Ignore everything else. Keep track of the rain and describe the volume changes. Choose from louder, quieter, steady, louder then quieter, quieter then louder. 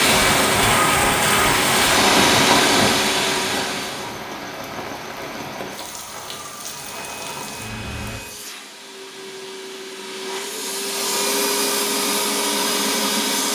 quieter.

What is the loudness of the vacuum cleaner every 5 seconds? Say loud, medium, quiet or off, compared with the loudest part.
loud, quiet, loud.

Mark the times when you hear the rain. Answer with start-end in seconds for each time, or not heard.
0.0-8.2.